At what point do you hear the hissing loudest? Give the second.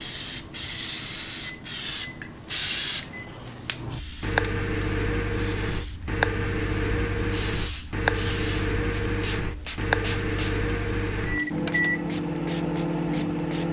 1 s.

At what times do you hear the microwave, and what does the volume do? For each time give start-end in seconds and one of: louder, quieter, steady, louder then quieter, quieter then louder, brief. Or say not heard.
0.0-13.6 louder.